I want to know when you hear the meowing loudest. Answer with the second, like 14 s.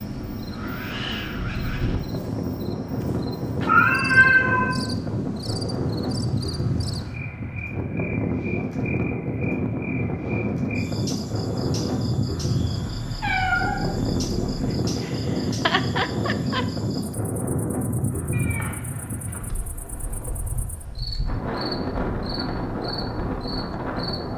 4 s.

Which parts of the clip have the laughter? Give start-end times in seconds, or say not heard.
14.7-16.6.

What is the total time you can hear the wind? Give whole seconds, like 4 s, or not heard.
24 s.